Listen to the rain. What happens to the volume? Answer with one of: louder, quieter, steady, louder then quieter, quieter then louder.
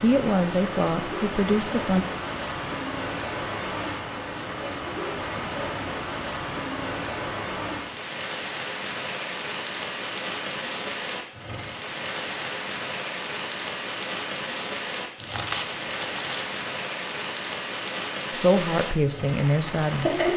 steady.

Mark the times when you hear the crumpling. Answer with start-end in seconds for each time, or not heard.
15.2-16.6.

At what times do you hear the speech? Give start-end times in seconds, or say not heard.
0.0-2.0, 18.3-20.3.